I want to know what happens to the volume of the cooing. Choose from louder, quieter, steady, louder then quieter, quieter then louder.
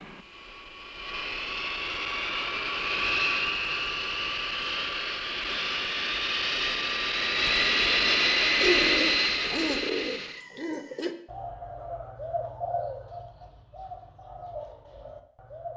quieter.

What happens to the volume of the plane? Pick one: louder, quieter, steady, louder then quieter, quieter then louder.
louder.